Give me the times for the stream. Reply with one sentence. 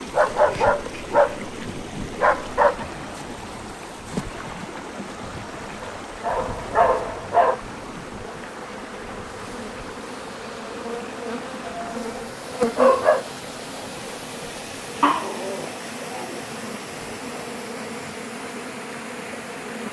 You can hear the stream from 0.0 to 19.8 s.